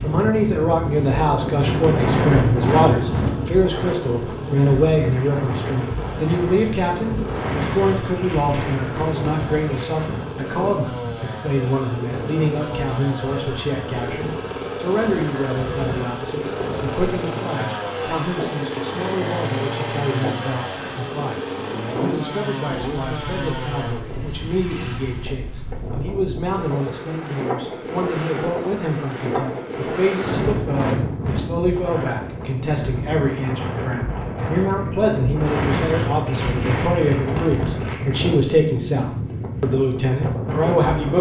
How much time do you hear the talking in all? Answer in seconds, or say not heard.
41 s.